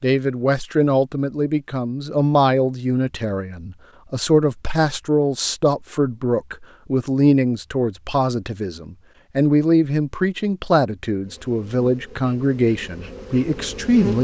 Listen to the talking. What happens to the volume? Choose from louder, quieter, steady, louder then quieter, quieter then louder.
steady.